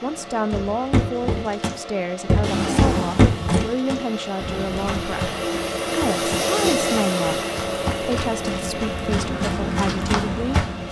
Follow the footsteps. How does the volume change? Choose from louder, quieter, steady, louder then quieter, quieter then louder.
quieter then louder.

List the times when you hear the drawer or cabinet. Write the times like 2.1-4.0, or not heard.
2.4-3.8, 7.9-8.3.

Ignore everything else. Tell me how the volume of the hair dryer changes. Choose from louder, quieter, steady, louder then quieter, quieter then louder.
louder then quieter.